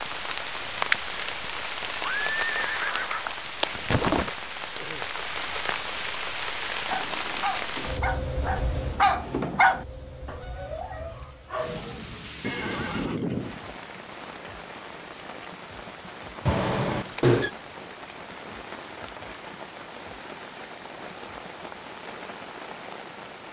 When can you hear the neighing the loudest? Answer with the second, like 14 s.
17 s.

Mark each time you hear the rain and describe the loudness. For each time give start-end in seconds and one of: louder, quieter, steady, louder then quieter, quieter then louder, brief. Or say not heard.
0.0-23.4 quieter.